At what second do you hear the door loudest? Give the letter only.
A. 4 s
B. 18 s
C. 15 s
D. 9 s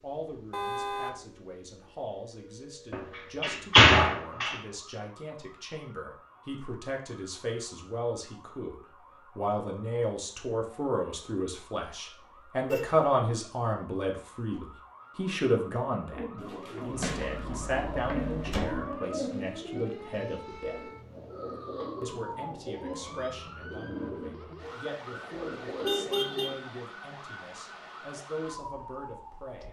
A.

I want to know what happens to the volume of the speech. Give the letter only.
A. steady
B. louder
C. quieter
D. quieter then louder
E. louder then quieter
E.